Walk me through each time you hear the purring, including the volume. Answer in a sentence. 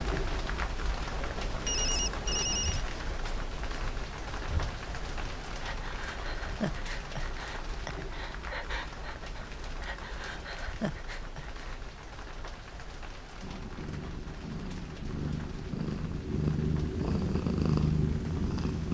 You can hear the purring from 13.4 to 18.8 s, getting louder.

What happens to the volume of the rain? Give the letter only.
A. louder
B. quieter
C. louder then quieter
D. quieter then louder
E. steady
B.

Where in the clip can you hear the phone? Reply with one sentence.
The phone can be heard from 1.2 to 2.9 s.